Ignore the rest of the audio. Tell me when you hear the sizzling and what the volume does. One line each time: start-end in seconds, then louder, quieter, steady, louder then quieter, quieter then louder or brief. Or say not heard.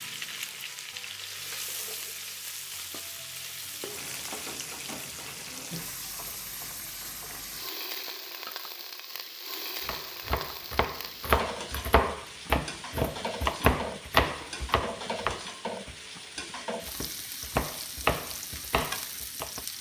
0.0-19.7 steady.